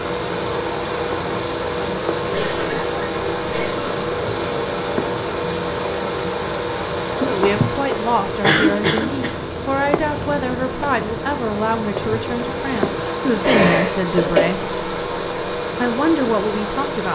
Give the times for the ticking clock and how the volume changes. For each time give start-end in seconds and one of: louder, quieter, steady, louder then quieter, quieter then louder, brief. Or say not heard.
not heard.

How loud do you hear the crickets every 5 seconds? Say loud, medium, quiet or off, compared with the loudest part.
medium, loud, loud, off.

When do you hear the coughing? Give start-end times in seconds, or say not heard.
2.3-4.0, 8.4-9.3, 13.4-14.4.